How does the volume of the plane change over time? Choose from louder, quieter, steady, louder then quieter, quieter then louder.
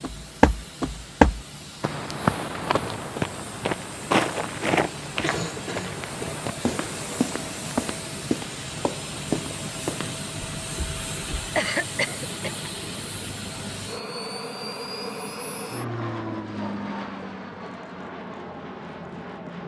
louder.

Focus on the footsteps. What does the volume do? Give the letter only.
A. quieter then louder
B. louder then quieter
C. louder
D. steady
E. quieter
E.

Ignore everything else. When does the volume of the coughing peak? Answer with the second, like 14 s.
12 s.